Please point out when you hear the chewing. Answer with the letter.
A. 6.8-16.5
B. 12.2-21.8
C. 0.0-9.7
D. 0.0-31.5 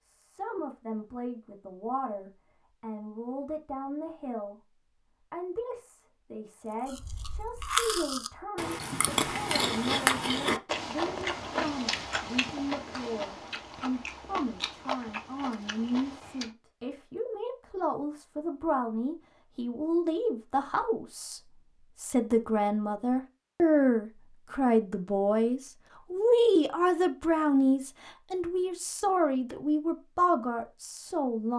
A.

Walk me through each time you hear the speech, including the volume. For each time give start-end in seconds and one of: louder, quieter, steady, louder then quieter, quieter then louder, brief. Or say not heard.
0.0-31.5 louder.